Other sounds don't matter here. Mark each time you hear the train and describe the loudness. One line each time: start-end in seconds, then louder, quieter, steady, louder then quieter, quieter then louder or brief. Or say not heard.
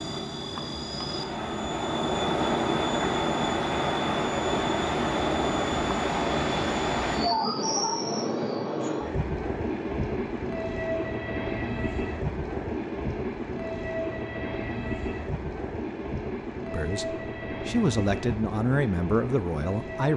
0.0-20.1 quieter.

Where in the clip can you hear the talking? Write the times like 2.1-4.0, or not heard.
16.7-20.1.